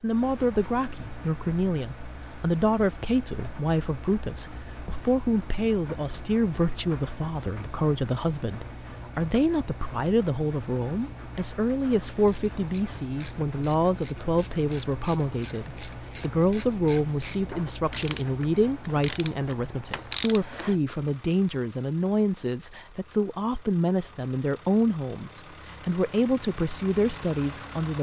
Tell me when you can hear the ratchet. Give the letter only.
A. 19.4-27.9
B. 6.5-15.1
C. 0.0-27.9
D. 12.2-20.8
D.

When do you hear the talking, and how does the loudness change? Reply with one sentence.
The talking can be heard from 0.0 to 27.9 s, at a steady volume.